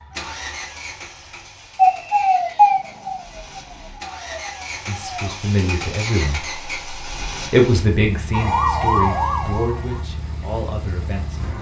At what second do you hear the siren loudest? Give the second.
2 s.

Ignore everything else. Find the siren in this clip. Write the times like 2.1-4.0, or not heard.
1.8-5.4, 8.3-10.1.